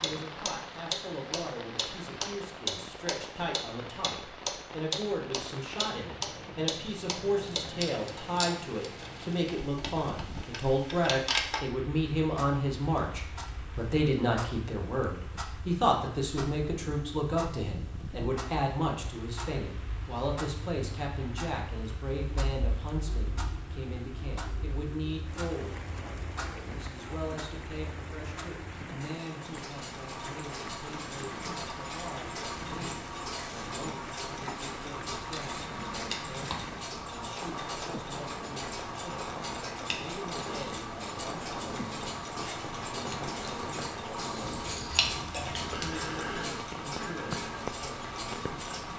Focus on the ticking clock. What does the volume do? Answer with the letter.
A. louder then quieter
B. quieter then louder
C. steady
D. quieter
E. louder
B.